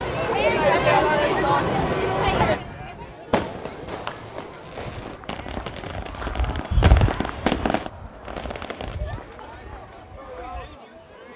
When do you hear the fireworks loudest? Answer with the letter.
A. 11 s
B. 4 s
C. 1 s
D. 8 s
D.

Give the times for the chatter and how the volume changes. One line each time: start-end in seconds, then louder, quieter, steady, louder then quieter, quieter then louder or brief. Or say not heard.
0.0-11.3 quieter.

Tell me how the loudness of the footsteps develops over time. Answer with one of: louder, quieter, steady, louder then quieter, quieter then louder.
louder then quieter.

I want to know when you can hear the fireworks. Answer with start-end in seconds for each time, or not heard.
1.4-8.9.